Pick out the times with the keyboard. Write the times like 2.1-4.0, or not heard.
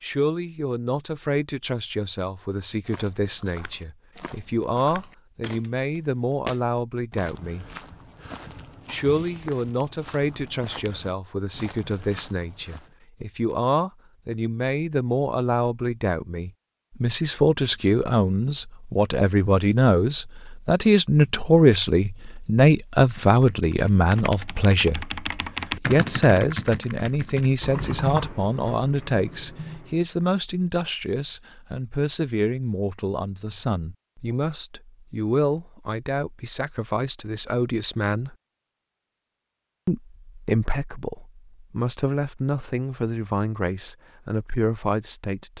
23.1-30.1.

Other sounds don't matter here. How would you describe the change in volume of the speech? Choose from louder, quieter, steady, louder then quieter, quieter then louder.
louder then quieter.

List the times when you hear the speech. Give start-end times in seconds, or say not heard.
0.0-7.7, 8.9-38.4, 39.9-45.5.